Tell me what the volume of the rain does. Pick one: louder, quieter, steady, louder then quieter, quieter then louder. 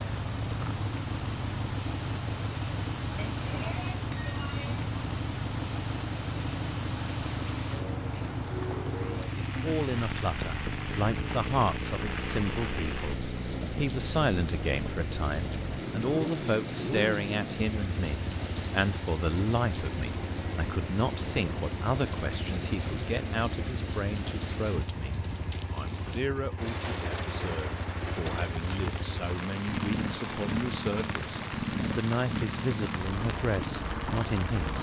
steady.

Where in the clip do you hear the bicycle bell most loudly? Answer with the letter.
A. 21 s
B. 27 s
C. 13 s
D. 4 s
D.